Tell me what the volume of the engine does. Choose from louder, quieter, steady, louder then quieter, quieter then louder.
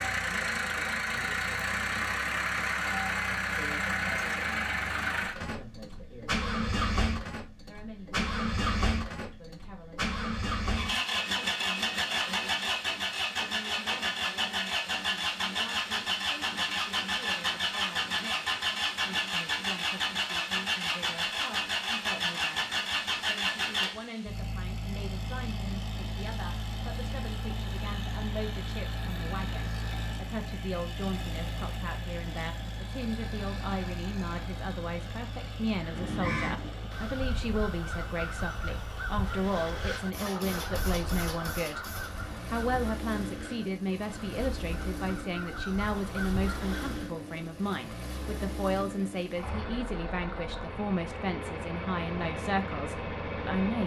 quieter.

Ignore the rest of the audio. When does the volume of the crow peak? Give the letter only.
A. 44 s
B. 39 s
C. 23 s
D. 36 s
D.